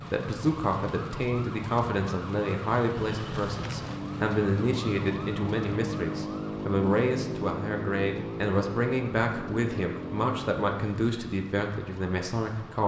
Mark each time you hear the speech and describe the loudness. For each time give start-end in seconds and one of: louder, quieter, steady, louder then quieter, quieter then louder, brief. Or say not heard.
0.0-12.8 steady.